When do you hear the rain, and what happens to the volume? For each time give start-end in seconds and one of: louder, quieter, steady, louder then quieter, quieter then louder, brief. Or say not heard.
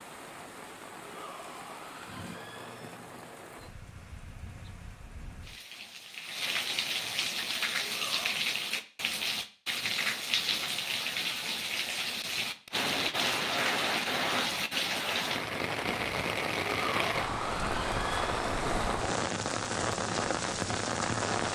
0.0-21.5 louder.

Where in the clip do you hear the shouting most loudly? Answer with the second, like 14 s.
17 s.